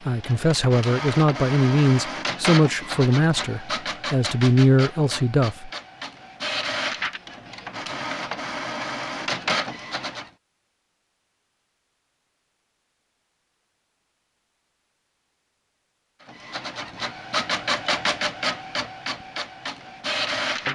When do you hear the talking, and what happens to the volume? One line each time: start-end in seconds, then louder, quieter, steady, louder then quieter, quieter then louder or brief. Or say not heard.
0.1-5.7 quieter then louder.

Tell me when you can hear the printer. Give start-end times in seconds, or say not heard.
0.0-10.3, 16.2-20.7.